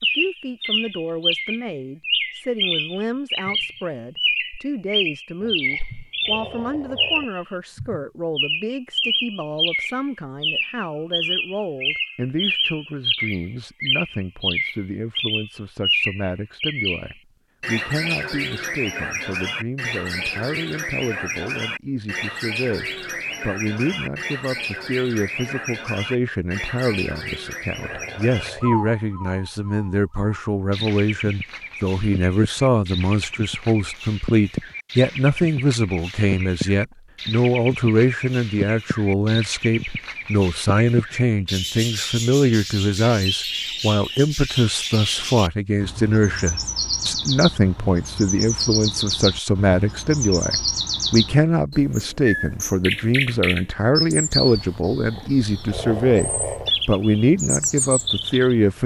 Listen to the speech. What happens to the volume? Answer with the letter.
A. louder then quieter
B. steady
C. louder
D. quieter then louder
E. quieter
C.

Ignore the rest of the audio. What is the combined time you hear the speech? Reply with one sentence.
You can hear the speech for 59 seconds altogether.